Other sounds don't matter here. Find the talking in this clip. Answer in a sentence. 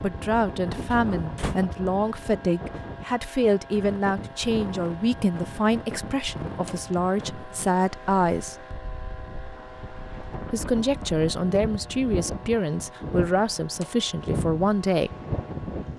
You can hear the talking from 0.0 to 8.6 s and from 10.5 to 15.1 s.